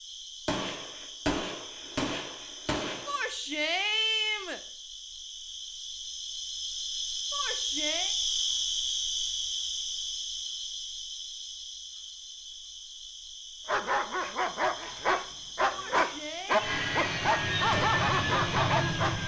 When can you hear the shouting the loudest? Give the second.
4 s.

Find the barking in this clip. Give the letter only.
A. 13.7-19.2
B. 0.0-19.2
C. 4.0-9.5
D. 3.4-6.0
A.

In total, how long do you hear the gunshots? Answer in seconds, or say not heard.
3 s.